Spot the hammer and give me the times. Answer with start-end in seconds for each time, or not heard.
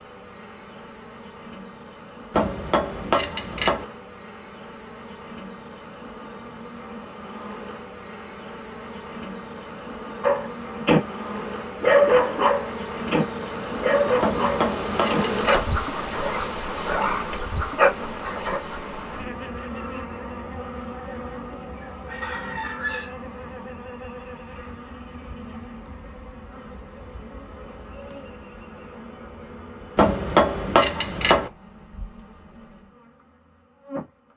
2.3-3.9, 14.2-15.8, 29.9-31.5.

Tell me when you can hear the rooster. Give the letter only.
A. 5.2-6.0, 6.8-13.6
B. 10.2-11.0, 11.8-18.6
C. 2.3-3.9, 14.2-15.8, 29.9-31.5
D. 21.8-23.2
D.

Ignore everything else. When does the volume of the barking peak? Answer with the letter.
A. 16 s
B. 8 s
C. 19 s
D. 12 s
D.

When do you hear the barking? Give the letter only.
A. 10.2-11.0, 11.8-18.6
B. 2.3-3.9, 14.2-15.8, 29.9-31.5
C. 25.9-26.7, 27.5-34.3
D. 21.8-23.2
A.